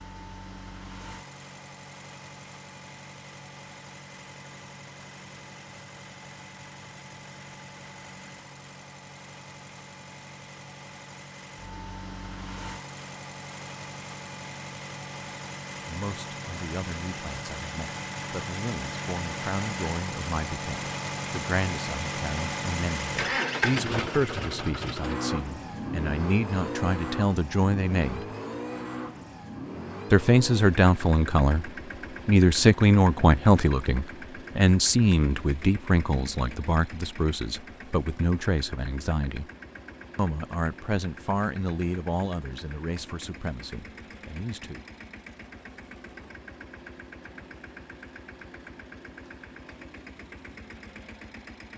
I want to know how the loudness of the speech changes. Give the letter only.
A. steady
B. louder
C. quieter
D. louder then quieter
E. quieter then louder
D.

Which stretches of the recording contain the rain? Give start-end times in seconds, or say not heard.
not heard.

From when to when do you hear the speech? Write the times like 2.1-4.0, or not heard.
15.8-28.2, 30.1-39.5, 40.1-44.9.